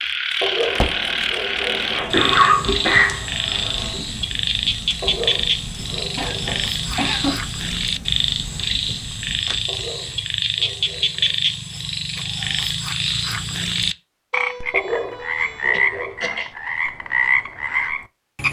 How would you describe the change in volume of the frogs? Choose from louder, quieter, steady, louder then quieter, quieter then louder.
steady.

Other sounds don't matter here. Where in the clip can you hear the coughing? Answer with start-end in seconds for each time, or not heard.
1.9-4.0, 6.2-7.3, 15.4-16.5.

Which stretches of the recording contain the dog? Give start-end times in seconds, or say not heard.
0.4-1.9, 5.0-6.7, 9.7-11.3, 14.7-16.3.